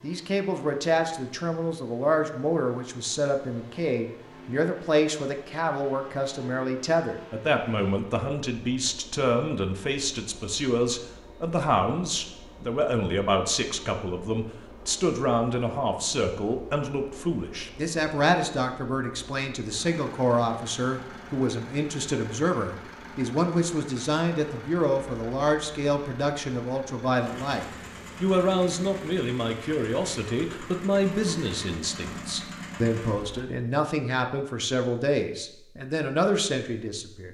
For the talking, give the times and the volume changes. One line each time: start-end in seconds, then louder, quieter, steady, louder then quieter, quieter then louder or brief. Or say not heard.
0.0-37.2 steady.